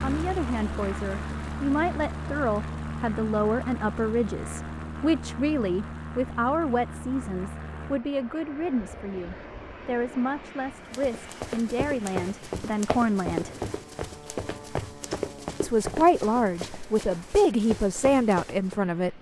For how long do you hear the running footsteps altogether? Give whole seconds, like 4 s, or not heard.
8 s.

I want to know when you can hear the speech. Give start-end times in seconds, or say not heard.
0.0-13.5, 15.6-19.1.